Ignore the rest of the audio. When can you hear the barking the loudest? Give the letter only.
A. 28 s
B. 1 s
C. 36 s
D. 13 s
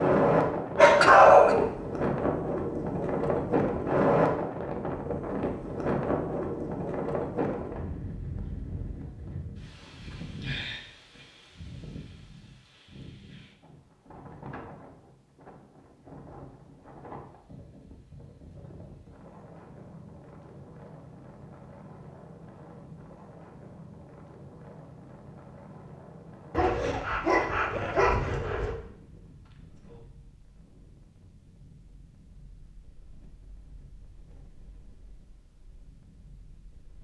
B.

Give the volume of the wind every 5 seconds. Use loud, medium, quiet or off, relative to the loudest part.
loud, medium, quiet, quiet, quiet, quiet, quiet, quiet.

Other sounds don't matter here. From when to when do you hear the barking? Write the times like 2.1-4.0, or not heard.
0.8-1.7, 26.5-28.8.